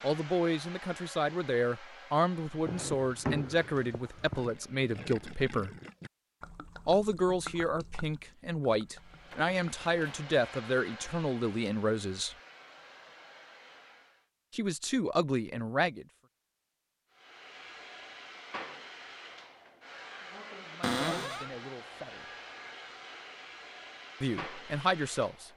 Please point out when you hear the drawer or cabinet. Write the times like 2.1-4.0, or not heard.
2.6-4.5, 9.3-10.3, 20.8-21.5.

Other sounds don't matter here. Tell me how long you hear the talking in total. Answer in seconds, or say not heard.
16 s.